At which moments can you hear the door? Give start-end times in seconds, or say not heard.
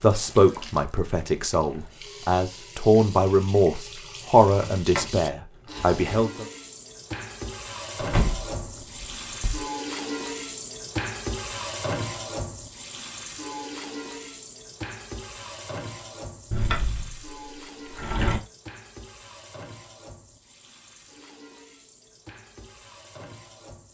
4.5-6.2, 8.0-9.7, 16.5-18.4.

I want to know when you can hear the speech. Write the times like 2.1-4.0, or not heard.
0.0-6.5.